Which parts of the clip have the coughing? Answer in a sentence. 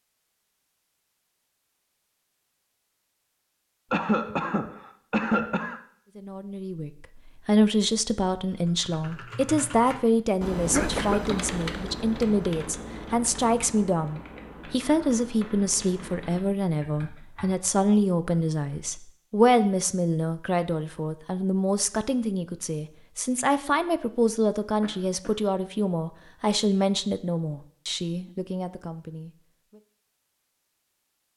The coughing can be heard from 3.9 to 5.8 s, from 10.7 to 11.6 s and from 24.8 to 25.4 s.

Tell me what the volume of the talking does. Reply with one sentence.
The volume of the talking stays about the same.